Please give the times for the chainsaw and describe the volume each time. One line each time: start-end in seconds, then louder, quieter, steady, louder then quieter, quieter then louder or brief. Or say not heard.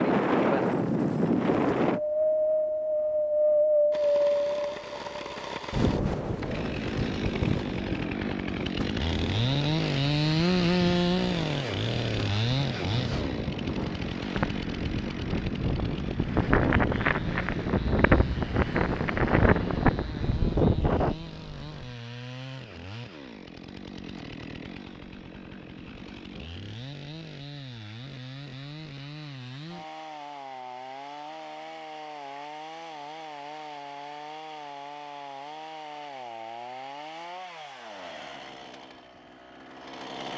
3.9-40.3 quieter.